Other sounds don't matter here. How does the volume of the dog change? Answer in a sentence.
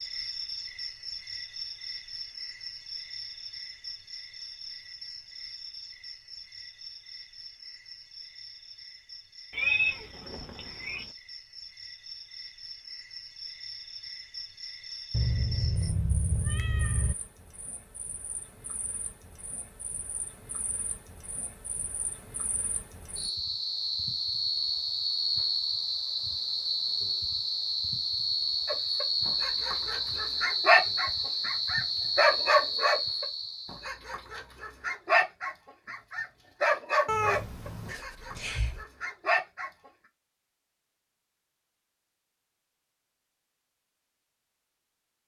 The volume of the dog goes down.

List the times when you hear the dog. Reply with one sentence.
The dog can be heard from 28.6 to 39.9 s.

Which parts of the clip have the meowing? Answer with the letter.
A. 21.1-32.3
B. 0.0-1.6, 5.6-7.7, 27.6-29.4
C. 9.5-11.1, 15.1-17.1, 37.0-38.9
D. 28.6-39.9
C.